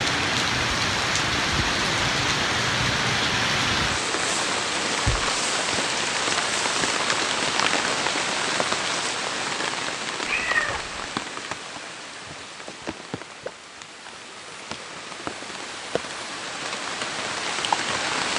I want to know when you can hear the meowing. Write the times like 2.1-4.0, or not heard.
10.2-11.1.